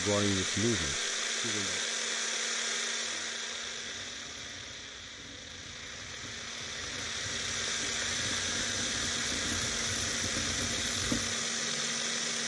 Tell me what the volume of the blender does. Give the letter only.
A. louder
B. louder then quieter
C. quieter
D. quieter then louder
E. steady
D.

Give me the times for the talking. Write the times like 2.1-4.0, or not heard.
0.0-1.8.